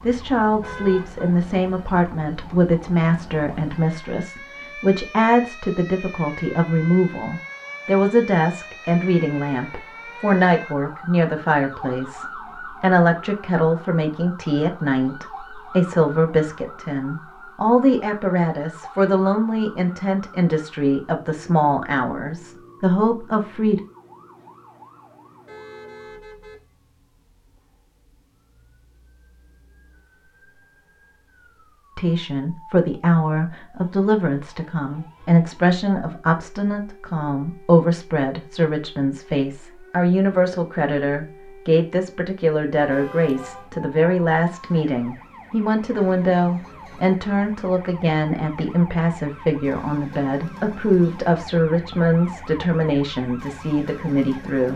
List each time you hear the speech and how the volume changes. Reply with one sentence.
The speech can be heard from 0.0 to 23.8 s, at a steady volume; and from 31.9 to 54.7 s, at a steady volume.